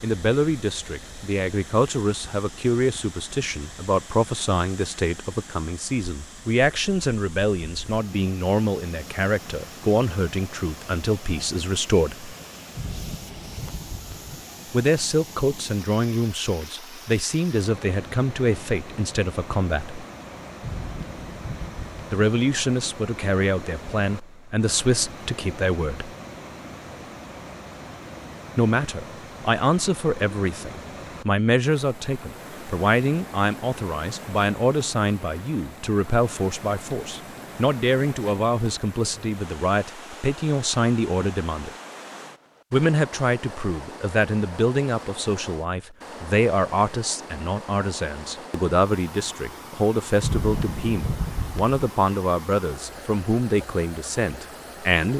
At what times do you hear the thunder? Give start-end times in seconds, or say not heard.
12.8-14.4, 20.6-22.1, 50.2-51.8.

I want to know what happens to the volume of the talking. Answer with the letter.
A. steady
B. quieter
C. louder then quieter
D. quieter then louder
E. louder
A.